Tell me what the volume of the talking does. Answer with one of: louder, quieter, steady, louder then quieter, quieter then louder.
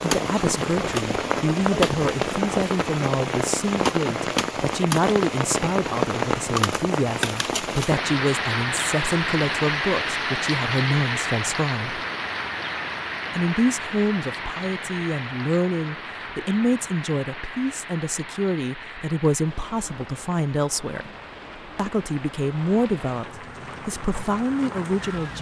steady.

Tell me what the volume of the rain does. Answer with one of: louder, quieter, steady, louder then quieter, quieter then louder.
quieter.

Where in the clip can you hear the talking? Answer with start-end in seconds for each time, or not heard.
0.0-12.0, 13.3-21.1, 21.8-25.3.